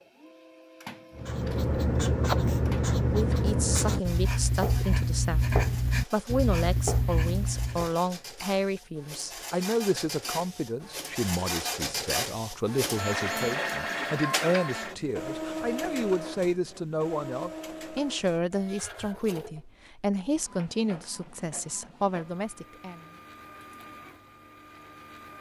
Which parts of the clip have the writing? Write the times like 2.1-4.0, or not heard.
1.1-7.9.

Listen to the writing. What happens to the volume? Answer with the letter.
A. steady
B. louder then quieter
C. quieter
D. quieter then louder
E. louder
A.